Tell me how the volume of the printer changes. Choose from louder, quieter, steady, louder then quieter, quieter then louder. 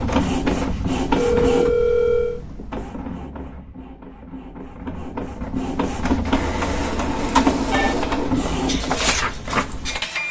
quieter then louder.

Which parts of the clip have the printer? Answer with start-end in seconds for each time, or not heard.
0.0-10.2.